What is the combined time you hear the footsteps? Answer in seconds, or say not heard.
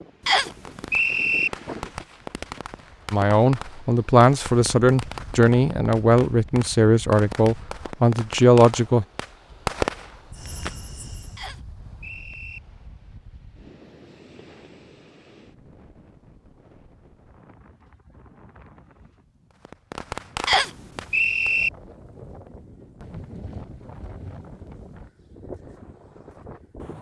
not heard.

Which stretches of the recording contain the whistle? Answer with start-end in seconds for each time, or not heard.
0.2-1.5, 11.3-12.6, 20.4-21.7.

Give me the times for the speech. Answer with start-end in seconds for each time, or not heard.
3.1-9.1.